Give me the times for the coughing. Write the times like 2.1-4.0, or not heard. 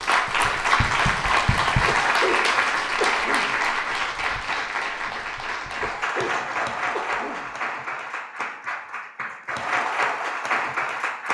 1.9-3.6, 5.8-7.5.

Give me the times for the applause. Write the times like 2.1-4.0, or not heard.
0.0-11.2.